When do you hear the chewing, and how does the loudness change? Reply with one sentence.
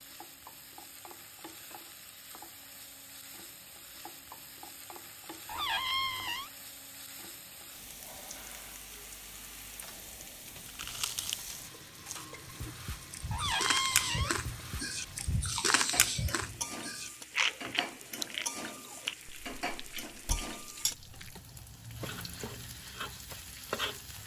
You can hear the chewing from 10.4 to 21.4 s, getting louder then quieter.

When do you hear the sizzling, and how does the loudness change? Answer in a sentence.
The sizzling can be heard from 0.0 to 24.2 s, getting louder.